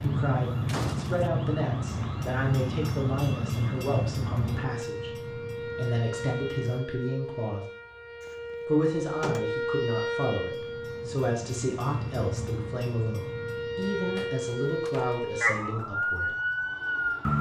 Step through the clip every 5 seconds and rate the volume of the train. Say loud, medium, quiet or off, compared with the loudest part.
loud, quiet, medium, quiet.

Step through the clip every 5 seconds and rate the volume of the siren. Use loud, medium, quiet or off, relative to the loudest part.
quiet, medium, medium, loud.